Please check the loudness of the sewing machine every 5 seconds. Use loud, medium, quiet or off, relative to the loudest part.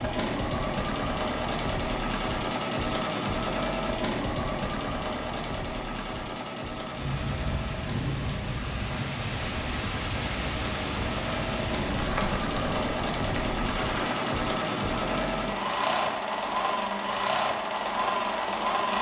loud, medium, loud, loud.